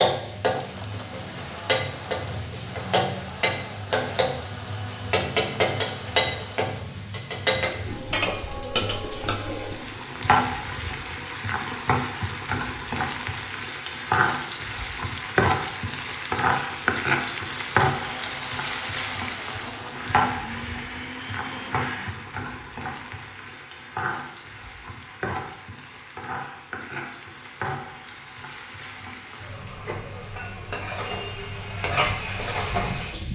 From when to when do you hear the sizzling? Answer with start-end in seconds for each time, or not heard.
0.0-33.3.